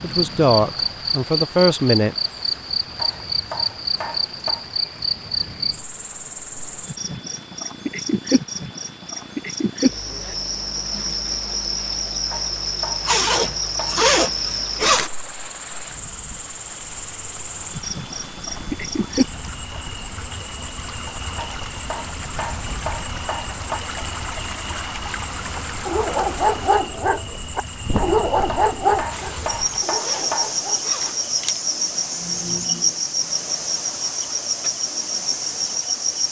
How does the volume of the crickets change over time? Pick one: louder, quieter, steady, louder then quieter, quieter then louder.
quieter then louder.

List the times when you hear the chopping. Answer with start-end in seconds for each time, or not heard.
3.0-4.7, 12.3-14.1, 21.4-23.9, 27.9-30.6.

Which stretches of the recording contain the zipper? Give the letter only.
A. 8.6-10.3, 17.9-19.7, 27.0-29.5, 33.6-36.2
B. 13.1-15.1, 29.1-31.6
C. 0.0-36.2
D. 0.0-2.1
B.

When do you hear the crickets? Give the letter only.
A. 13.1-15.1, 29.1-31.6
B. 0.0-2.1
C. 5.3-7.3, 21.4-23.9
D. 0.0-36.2
D.